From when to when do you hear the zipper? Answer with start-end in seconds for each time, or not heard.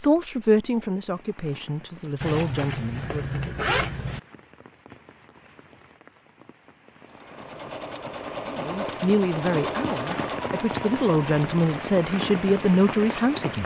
2.2-4.2.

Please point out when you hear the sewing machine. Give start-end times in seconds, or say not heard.
7.0-13.6.